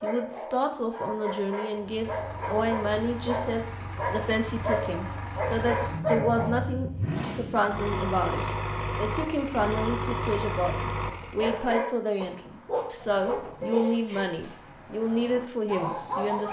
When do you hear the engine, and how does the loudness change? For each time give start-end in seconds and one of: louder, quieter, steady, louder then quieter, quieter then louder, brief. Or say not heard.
1.8-11.7 louder.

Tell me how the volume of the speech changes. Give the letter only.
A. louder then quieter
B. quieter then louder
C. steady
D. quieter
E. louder
C.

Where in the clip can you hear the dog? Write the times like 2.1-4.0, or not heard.
0.0-6.7, 11.3-16.4.